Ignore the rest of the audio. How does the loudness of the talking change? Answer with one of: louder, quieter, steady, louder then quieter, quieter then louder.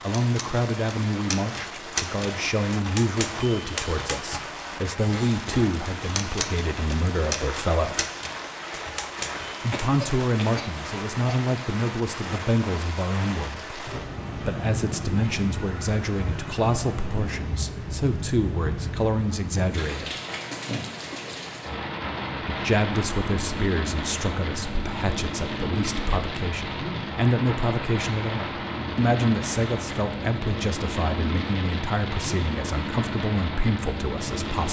steady.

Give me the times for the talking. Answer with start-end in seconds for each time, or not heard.
0.0-8.1, 9.6-20.1, 22.4-34.6.